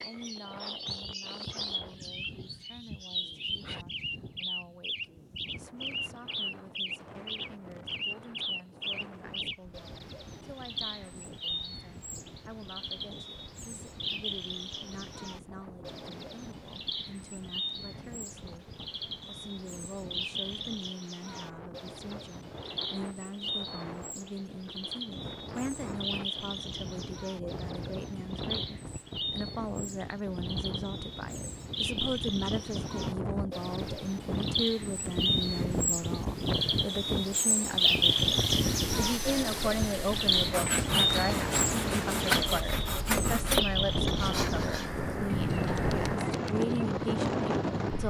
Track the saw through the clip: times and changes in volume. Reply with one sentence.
The saw can be heard from 38.4 to 45.0 s, getting louder.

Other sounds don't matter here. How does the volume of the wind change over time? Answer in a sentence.
The loudness of the wind goes up.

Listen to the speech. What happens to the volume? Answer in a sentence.
The volume of the speech goes up.